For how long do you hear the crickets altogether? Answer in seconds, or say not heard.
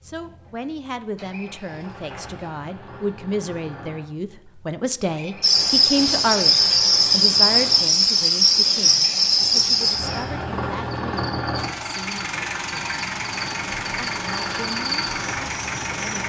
11 s.